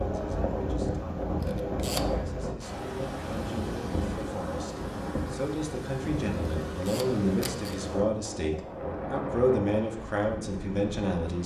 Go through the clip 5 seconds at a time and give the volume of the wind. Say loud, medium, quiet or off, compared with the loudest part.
loud, loud, medium.